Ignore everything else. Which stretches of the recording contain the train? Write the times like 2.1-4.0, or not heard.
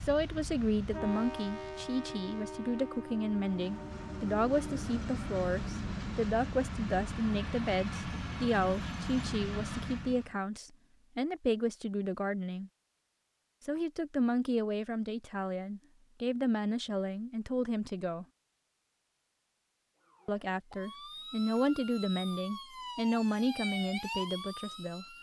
0.0-10.3.